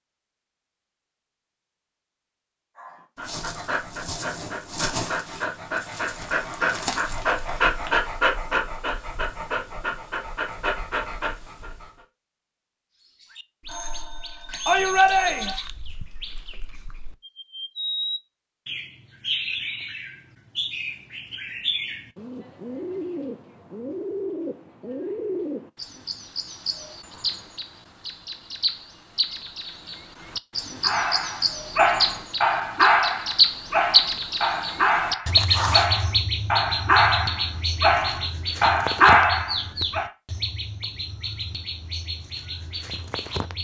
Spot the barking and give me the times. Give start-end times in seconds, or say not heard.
2.8-11.9, 30.8-40.0.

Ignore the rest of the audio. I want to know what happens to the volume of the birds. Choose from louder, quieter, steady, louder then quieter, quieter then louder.
louder then quieter.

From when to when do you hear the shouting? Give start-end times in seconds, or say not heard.
14.7-15.6.